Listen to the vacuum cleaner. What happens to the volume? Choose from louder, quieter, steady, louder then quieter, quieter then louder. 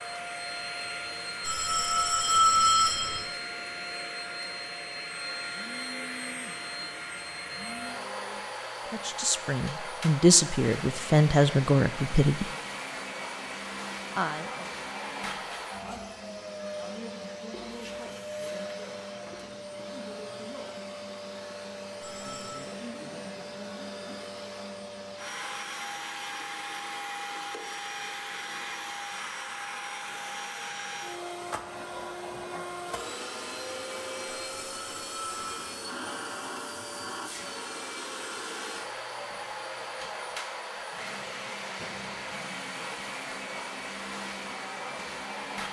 steady.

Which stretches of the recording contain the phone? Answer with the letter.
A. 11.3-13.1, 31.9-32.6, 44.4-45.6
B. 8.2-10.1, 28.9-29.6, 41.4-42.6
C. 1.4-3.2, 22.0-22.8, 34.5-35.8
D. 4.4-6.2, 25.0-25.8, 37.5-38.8
C.